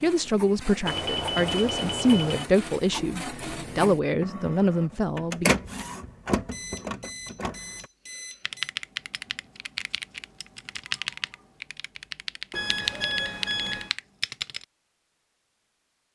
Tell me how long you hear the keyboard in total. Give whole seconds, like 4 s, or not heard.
6 s.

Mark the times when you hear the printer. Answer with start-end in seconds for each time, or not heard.
0.0-7.9.